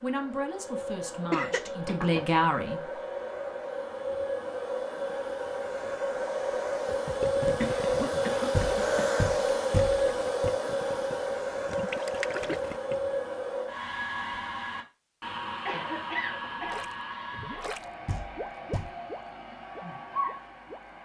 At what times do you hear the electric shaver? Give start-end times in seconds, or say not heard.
not heard.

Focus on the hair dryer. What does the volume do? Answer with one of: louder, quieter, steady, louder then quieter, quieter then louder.
louder then quieter.